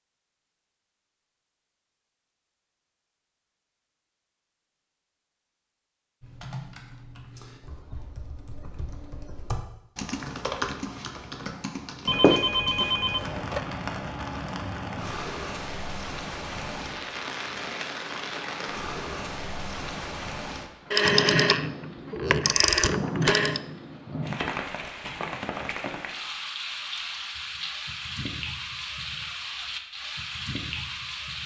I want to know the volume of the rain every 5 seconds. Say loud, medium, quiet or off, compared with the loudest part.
off, off, loud, loud, loud, loud, loud.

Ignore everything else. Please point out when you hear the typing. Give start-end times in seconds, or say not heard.
6.2-13.3.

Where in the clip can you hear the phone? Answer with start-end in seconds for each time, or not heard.
12.1-13.6, 20.9-23.6.